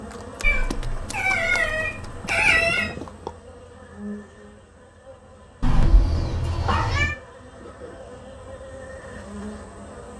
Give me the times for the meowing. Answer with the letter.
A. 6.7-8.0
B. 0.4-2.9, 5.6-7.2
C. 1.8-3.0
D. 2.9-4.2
B.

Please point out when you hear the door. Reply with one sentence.
The door can't be heard in this clip.